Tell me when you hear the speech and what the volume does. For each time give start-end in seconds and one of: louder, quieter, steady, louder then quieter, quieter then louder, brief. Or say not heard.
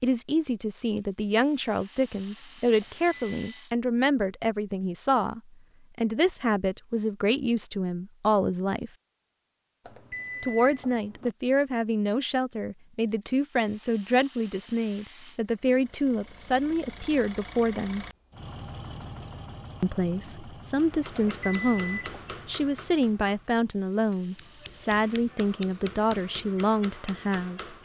0.0-8.9 steady
10.4-18.1 steady
19.8-27.8 steady.